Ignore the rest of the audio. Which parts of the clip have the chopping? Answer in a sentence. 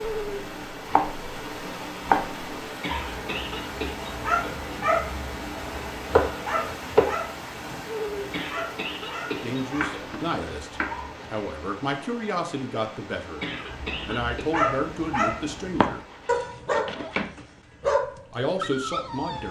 You can hear the chopping from 0.0 to 2.5 s, from 5.5 to 7.1 s, from 9.7 to 11.4 s and from 15.8 to 17.3 s.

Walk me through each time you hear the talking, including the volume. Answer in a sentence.
The talking can be heard from 9.4 to 16.1 s, at a steady volume; and briefly from 17.8 to 19.4 s.